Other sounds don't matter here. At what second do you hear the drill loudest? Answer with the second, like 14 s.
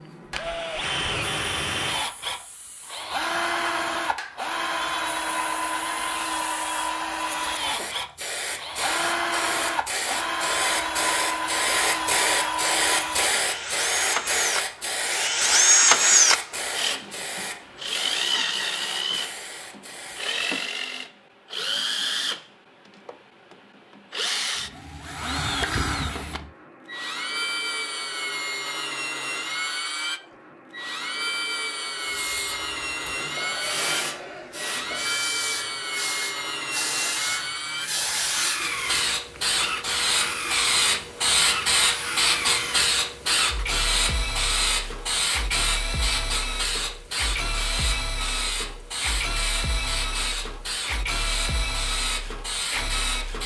16 s.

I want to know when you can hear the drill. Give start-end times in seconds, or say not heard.
0.0-53.4.